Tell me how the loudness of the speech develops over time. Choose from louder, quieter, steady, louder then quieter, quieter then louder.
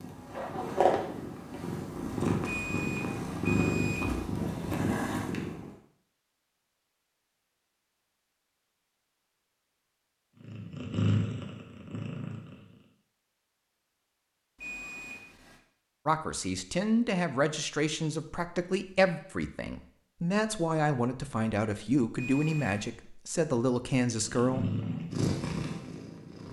steady.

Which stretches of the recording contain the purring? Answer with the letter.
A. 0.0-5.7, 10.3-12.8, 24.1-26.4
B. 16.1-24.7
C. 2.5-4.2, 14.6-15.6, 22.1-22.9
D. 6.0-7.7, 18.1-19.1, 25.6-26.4
A.